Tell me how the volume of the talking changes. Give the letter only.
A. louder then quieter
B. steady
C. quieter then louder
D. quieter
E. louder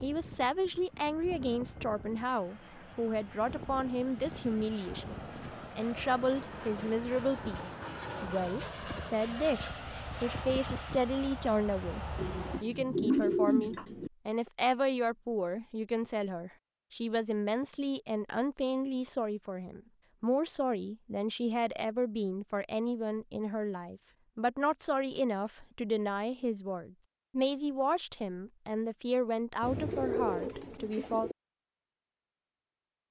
B.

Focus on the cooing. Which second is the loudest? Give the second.
13 s.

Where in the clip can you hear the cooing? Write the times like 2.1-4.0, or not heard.
12.2-14.1, 29.6-31.4.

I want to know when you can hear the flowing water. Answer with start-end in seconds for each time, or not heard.
not heard.